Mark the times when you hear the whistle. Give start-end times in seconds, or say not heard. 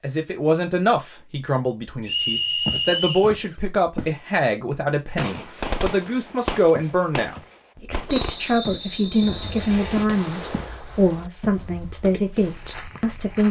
2.0-3.3, 8.1-10.1.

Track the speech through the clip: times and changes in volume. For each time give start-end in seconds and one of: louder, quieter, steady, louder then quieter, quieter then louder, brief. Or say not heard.
0.0-13.4 steady.